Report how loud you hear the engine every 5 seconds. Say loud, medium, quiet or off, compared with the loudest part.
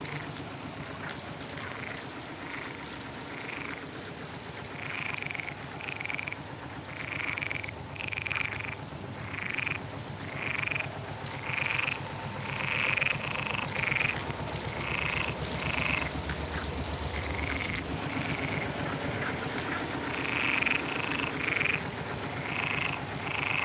medium, medium, loud, loud, loud.